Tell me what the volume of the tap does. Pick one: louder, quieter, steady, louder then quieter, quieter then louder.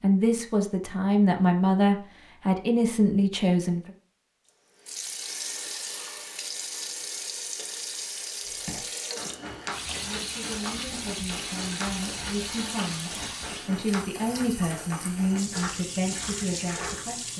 steady.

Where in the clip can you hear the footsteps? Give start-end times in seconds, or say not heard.
8.4-17.1.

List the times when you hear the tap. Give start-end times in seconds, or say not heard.
4.8-17.3.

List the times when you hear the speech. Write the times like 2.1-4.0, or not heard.
0.0-3.9, 10.0-17.3.